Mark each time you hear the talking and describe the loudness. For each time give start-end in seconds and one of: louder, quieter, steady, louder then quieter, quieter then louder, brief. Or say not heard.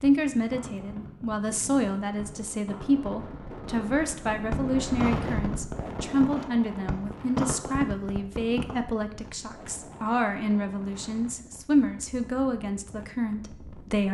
0.0-14.0 steady.